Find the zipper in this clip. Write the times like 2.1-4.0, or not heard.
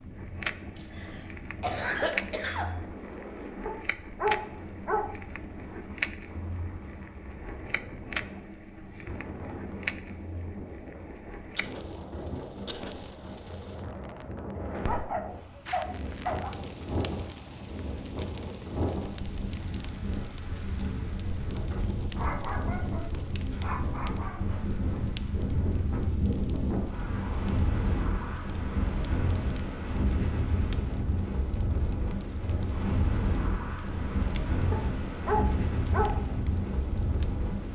not heard.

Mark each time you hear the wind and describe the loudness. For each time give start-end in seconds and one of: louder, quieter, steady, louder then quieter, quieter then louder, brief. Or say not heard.
0.0-37.7 louder.